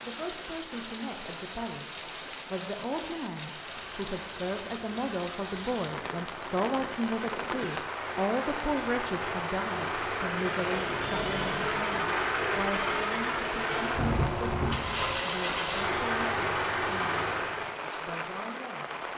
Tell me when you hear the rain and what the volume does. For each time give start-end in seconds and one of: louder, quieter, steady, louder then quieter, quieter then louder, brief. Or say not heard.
0.0-19.1 steady.